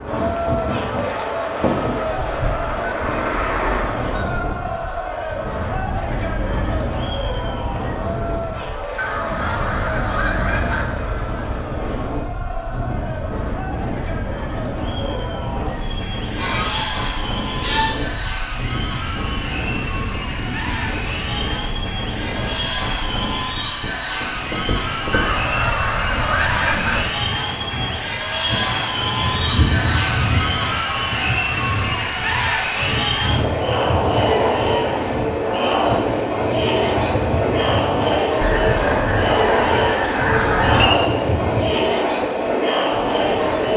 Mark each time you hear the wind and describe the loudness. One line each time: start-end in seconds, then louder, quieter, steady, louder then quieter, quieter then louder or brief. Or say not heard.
0.0-43.7 steady.